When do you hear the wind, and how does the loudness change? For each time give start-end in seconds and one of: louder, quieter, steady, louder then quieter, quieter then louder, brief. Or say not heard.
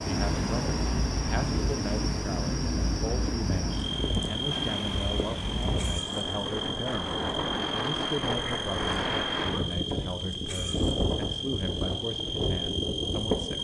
0.0-13.5 steady.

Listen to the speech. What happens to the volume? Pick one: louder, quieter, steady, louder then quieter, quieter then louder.
steady.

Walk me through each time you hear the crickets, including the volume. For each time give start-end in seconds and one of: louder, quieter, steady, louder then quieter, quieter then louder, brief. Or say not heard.
0.0-13.5 steady.